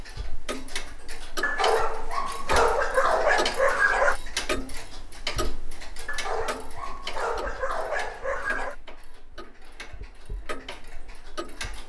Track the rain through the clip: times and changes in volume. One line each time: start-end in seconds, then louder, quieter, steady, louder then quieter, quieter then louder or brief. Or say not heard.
not heard.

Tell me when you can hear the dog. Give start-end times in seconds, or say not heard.
1.4-4.2, 6.0-8.8.